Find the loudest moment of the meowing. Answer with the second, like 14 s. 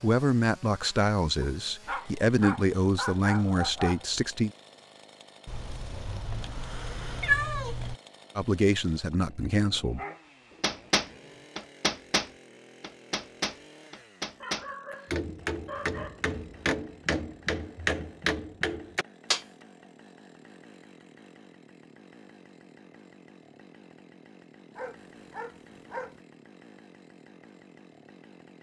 7 s.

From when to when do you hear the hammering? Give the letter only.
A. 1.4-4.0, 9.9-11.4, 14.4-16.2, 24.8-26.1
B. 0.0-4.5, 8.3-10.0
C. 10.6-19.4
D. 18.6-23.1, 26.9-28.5
C.